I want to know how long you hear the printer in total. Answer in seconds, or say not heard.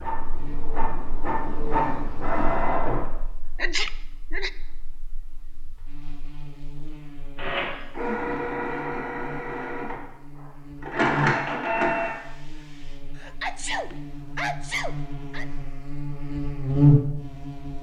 9 s.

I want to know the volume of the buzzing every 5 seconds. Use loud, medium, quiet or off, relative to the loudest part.
quiet, quiet, quiet, loud.